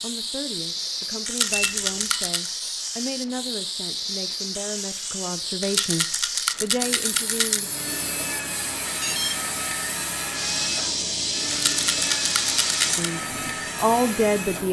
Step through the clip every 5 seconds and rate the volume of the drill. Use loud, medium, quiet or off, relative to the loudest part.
off, loud, loud.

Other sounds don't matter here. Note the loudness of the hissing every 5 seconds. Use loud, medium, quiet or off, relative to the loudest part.
loud, medium, loud.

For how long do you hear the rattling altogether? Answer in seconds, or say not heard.
5 s.